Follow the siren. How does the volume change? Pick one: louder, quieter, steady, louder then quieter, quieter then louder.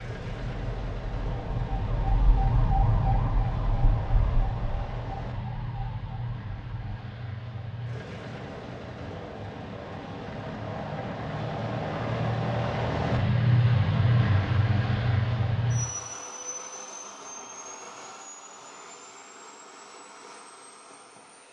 louder then quieter.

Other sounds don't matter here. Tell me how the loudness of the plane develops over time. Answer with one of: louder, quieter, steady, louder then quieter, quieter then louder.
louder then quieter.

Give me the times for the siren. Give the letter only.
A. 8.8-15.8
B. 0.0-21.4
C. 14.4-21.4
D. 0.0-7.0
D.